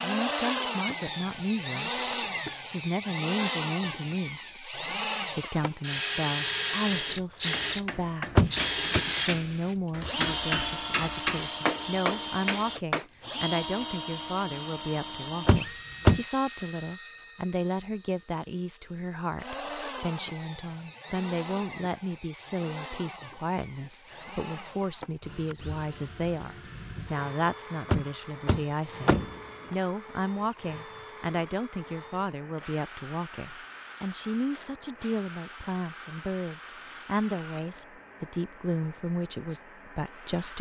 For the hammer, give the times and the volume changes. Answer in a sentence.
You can hear the hammer from 7.5 to 13.1 s, getting louder.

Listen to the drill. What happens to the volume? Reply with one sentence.
The loudness of the drill goes down.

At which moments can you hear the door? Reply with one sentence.
The door can be heard from 8.3 to 9.0 s, from 15.4 to 16.2 s and from 27.9 to 29.3 s.